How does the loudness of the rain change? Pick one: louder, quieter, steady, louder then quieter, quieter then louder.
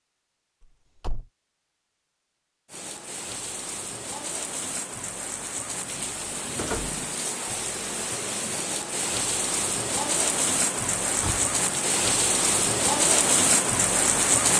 louder.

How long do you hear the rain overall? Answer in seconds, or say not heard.
12 s.